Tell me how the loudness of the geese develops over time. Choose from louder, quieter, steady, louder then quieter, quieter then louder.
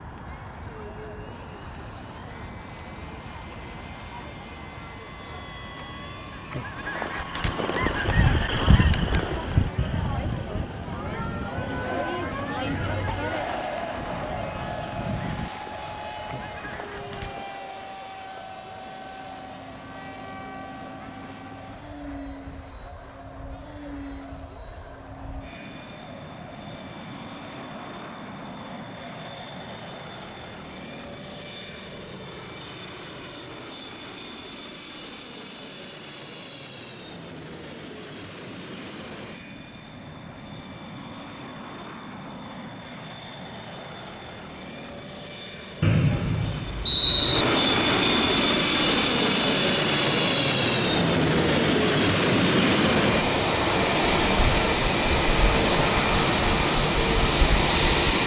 quieter.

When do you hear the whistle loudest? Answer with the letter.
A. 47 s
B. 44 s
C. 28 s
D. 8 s
A.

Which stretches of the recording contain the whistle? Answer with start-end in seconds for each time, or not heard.
45.8-47.5.